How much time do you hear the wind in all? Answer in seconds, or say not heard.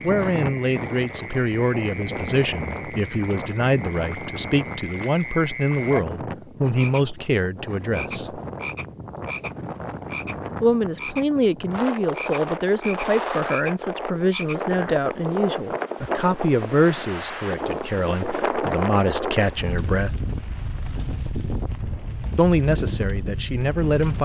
24 s.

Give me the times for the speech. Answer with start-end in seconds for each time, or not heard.
0.0-8.4, 10.6-20.2, 22.4-24.2.